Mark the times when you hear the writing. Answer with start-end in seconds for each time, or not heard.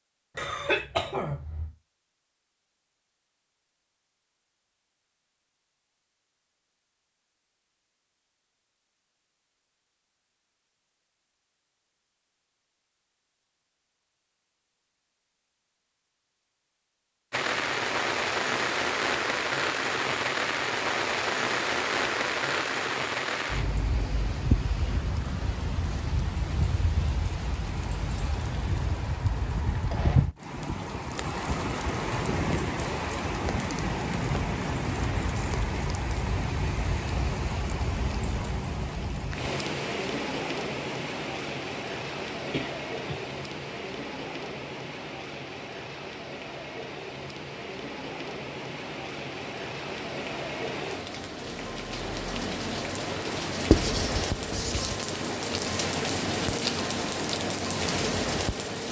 53.7-55.0.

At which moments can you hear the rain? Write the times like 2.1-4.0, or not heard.
17.3-58.8.